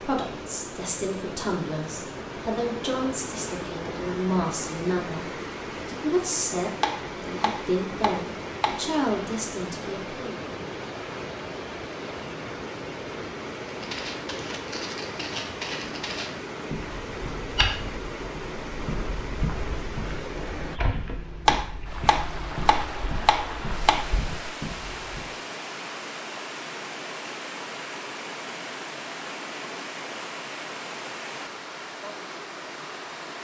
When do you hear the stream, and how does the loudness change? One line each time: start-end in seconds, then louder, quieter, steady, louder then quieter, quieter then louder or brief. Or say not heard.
0.0-33.3 steady.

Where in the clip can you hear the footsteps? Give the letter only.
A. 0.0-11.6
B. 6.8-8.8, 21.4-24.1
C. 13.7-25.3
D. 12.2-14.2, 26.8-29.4
C.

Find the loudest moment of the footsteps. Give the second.
18 s.